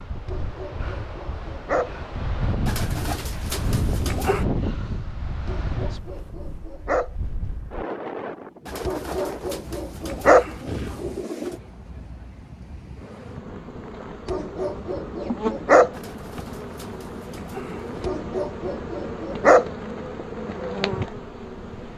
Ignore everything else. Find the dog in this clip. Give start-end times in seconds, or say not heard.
0.2-1.9, 5.5-7.1, 8.8-10.4, 14.2-15.9, 18.0-19.6.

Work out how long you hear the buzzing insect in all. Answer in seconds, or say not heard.
9 s.